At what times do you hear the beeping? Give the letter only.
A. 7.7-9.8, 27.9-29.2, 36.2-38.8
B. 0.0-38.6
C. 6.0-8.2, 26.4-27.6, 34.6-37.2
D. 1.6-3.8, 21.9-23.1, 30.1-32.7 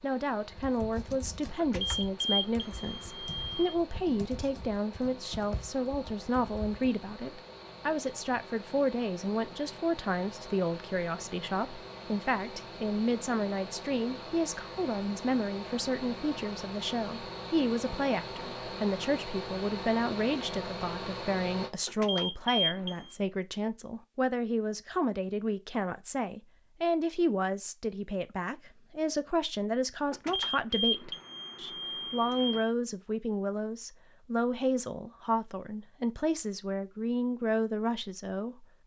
D.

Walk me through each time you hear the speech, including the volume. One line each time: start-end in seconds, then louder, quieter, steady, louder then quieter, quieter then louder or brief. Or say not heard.
0.0-38.6 steady.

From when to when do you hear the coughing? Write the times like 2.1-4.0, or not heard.
not heard.